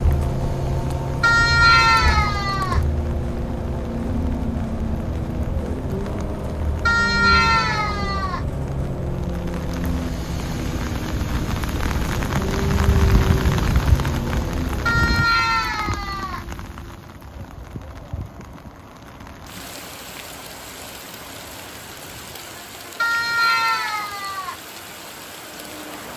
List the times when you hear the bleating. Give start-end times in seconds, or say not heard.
1.2-2.8, 6.8-8.4, 14.8-16.4, 23.0-24.6.